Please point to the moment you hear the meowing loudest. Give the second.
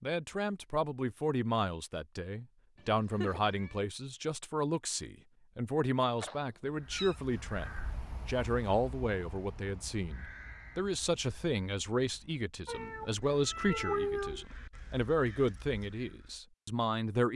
14 s.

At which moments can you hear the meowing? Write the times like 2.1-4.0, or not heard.
2.8-3.8, 6.2-7.2, 12.7-14.4.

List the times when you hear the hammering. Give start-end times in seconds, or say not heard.
not heard.